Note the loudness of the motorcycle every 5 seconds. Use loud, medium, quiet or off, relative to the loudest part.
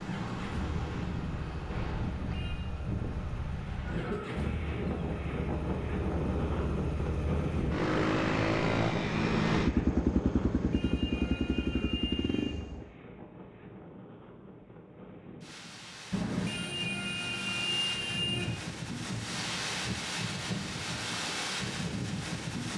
quiet, loud, loud, off, off.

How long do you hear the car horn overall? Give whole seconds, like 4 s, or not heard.
5 s.